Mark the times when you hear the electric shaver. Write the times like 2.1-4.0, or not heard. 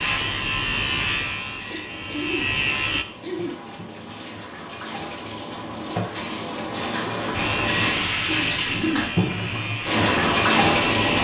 0.0-3.0, 7.3-11.1.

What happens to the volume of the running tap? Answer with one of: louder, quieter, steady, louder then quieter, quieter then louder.
louder.